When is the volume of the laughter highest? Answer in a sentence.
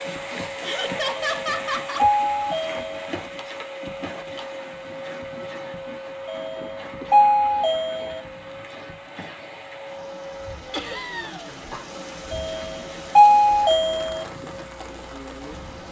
The loudest moment of the laughter is at 1 second.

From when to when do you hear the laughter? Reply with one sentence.
The laughter can be heard from 0.6 to 2.0 s, from 6.3 to 8.6 s and from 10.7 to 11.5 s.